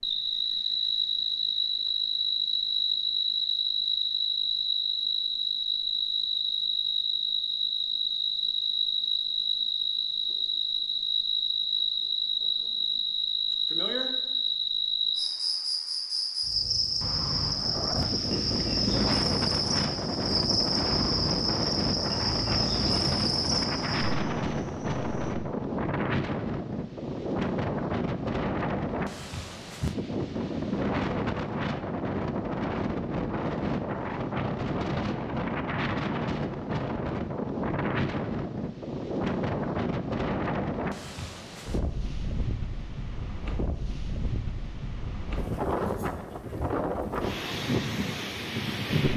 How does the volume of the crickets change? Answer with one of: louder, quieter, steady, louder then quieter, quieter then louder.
steady.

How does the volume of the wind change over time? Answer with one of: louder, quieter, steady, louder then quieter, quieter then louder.
steady.